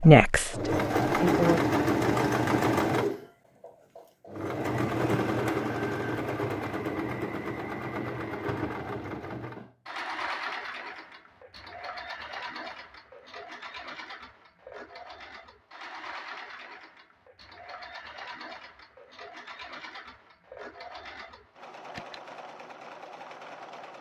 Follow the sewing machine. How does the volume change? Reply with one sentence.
The volume of the sewing machine goes down.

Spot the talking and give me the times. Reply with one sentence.
You can hear the talking from 0.0 to 1.6 s.